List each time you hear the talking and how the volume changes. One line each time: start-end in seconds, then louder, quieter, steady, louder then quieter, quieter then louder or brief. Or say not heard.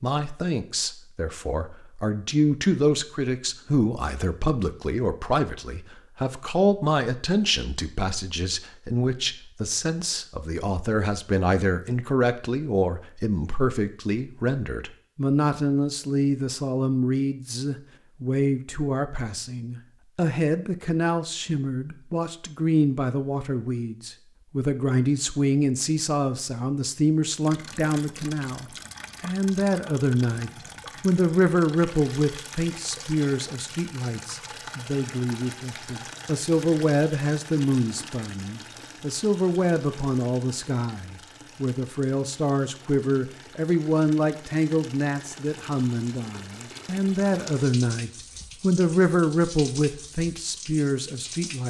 0.0-51.6 steady.